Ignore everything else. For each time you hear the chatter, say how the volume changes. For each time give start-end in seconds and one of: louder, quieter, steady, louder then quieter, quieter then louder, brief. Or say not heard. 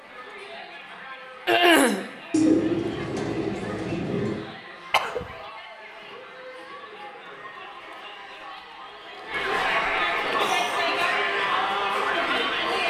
0.0-12.8 louder.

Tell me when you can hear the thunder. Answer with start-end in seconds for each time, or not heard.
not heard.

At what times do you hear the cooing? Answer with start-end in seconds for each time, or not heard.
2.3-4.3.